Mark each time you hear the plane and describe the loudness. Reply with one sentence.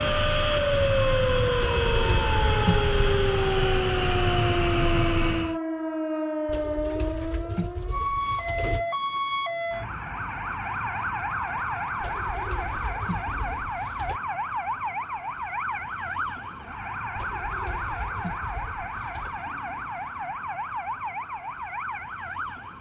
You can hear the plane from 0.0 to 5.6 s, at a steady volume.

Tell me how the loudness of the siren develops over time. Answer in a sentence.
The volume of the siren goes down.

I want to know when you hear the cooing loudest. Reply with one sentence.
The volume of the cooing peaks at 3 seconds.